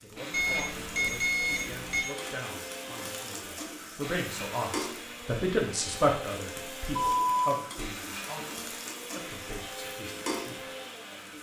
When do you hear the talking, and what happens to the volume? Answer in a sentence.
The talking can be heard from 0.0 to 10.7 s, getting louder then quieter.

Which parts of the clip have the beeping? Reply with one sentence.
You can hear the beeping from 0.3 to 2.0 s and from 7.0 to 7.6 s.